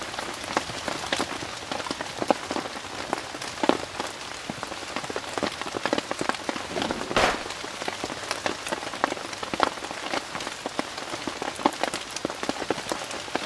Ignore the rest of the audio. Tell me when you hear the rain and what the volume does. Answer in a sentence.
The rain can be heard from 0.0 to 13.4 s, at a steady volume.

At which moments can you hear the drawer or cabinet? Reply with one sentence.
The drawer or cabinet can be heard from 6.7 to 7.5 s.